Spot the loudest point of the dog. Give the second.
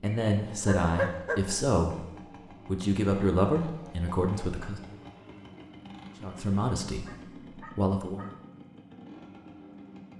1 s.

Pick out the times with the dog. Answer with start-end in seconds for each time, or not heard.
0.1-1.4, 7.0-8.3.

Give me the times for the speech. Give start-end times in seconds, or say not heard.
0.0-5.0, 6.2-8.3.